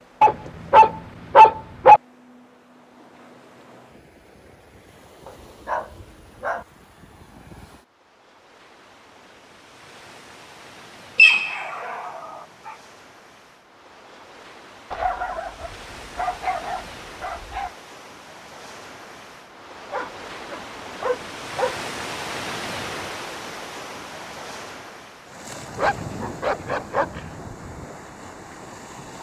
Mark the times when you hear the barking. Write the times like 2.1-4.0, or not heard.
0.2-2.0, 5.2-6.7, 11.2-12.2, 14.9-17.7, 19.9-21.8, 25.8-27.2.